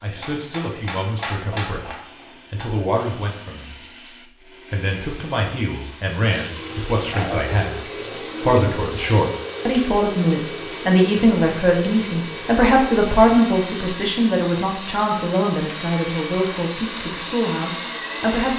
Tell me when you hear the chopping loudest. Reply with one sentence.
The volume of the chopping peaks at 1 second.